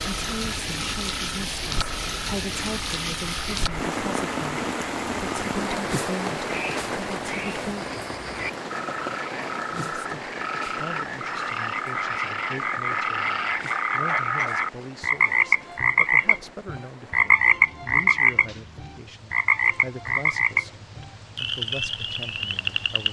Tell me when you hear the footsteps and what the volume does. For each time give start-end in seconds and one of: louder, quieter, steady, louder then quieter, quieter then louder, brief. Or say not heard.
not heard.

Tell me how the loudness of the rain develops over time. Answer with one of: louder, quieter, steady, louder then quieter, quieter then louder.
quieter.